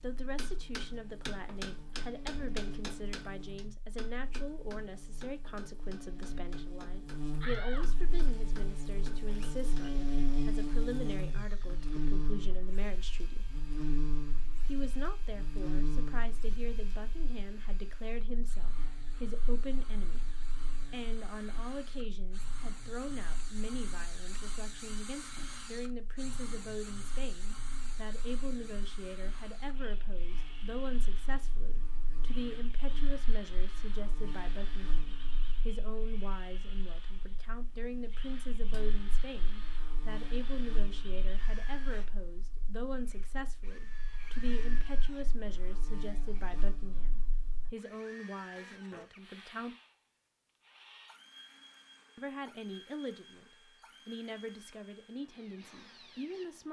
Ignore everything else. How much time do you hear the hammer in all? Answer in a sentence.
The hammer can be heard for 10 seconds in total.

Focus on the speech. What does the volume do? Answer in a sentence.
The volume of the speech stays about the same.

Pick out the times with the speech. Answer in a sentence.
The speech can be heard from 0.0 to 13.5 s, from 14.7 to 20.3 s, from 20.9 to 49.8 s and from 52.1 to 56.6 s.